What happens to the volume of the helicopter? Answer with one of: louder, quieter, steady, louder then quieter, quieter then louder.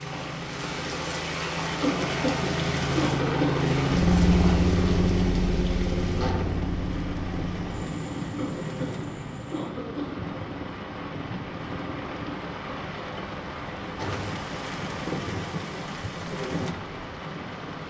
louder then quieter.